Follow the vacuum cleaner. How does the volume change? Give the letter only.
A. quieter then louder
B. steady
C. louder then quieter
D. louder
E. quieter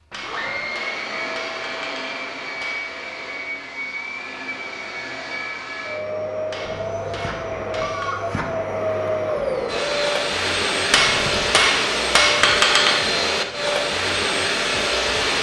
D.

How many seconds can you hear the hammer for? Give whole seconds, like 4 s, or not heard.
7 s.